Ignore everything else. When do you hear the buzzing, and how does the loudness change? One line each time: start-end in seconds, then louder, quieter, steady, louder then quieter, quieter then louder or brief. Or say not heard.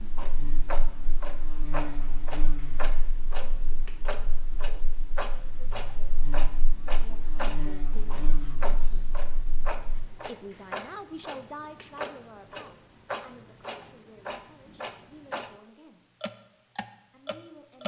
0.1-10.1 quieter then louder.